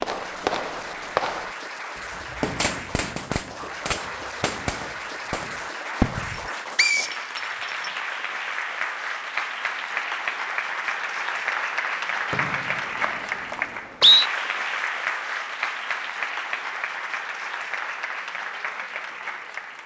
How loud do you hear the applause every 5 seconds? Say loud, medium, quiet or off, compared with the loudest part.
medium, loud, loud, loud.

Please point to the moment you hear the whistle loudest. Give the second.
14 s.